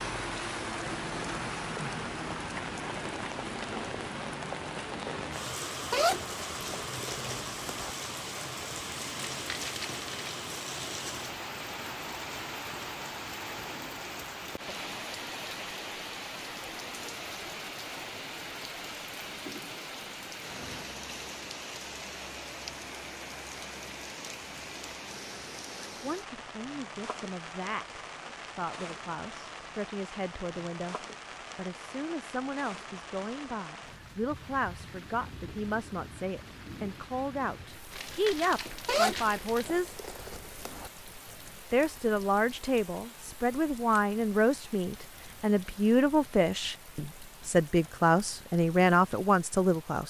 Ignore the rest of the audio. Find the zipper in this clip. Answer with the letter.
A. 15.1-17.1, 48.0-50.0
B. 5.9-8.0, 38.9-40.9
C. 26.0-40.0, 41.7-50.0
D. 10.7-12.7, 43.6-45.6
B.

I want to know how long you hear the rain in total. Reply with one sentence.
You can hear the rain for 50 seconds altogether.